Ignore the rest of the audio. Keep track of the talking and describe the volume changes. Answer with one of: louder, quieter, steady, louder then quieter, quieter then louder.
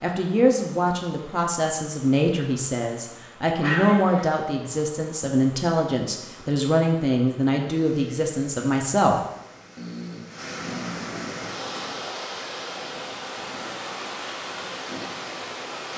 steady.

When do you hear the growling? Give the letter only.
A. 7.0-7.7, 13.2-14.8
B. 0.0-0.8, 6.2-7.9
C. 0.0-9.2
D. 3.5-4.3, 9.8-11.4
D.